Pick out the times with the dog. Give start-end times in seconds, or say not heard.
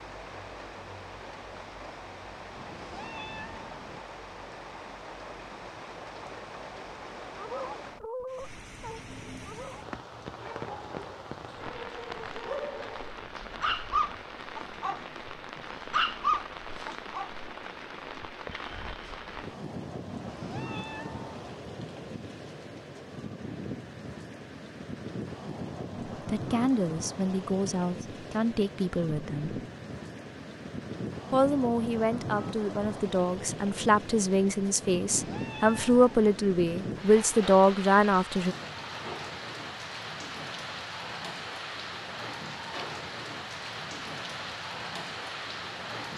7.3-17.3.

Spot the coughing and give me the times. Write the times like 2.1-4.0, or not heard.
not heard.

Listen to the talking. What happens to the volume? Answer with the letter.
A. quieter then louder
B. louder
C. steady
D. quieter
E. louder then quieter
B.